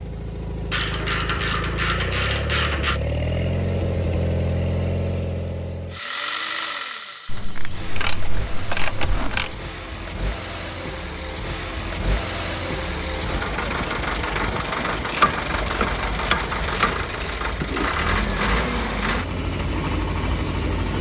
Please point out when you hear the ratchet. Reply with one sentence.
The ratchet can be heard from 0.7 to 3.0 s, from 7.2 to 9.6 s and from 15.1 to 17.9 s.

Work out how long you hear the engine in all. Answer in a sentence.
The engine can be heard for 21 seconds in total.